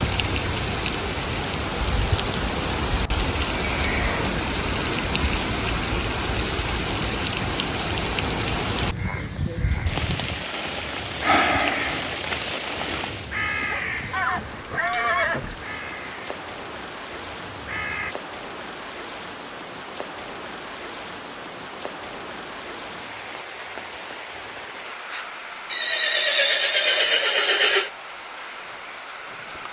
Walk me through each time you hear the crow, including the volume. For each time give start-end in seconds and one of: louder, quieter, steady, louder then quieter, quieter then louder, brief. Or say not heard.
8.8-18.1 quieter.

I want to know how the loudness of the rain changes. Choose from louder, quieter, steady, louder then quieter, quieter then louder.
quieter.